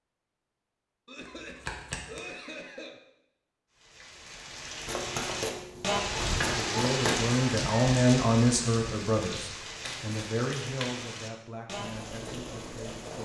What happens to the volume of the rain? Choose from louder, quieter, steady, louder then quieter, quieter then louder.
louder then quieter.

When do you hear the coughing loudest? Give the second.
2 s.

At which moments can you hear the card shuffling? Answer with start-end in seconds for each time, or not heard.
1.2-2.2, 4.8-7.2, 9.8-11.1.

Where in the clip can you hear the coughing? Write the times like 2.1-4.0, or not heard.
1.1-3.0.